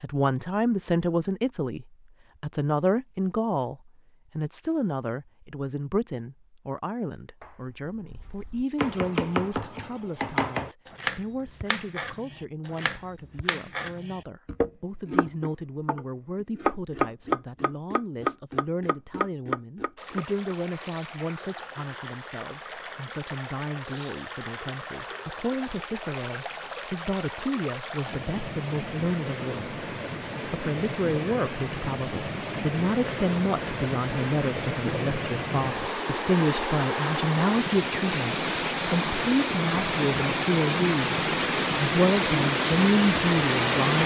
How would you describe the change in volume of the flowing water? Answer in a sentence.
The volume of the flowing water goes up.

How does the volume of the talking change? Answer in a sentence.
The volume of the talking goes down, then up.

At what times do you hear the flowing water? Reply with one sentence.
The flowing water can be heard from 19.9 to 44.0 s.